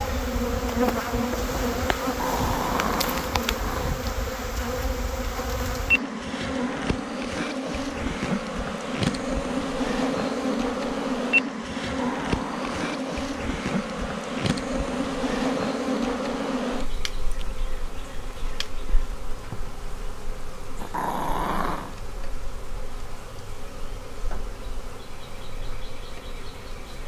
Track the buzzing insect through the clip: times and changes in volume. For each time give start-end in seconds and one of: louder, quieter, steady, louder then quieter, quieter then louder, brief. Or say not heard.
0.0-27.0 quieter.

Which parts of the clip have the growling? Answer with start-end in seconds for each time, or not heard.
2.0-4.0, 11.9-13.2, 20.8-21.9.